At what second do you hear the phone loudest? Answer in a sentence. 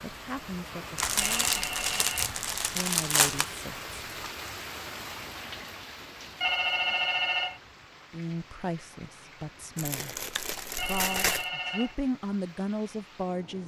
The loudest moment of the phone is at 7 seconds.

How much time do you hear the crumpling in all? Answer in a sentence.
You can hear the crumpling for 4 seconds altogether.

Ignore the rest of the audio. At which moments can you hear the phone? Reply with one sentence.
You can hear the phone from 1.1 to 2.4 s, from 6.4 to 7.6 s and from 10.8 to 11.9 s.